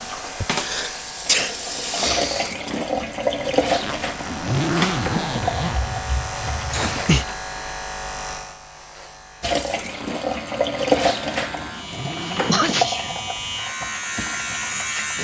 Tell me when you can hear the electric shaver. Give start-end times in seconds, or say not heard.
0.0-15.1.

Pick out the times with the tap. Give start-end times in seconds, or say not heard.
0.0-7.3, 9.4-15.1.